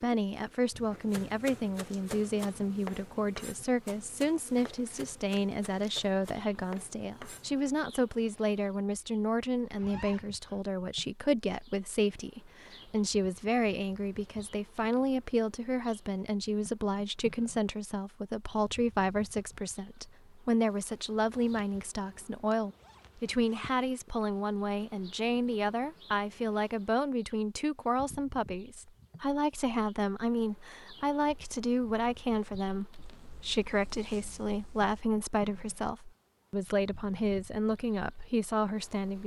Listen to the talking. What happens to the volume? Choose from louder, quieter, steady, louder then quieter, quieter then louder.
steady.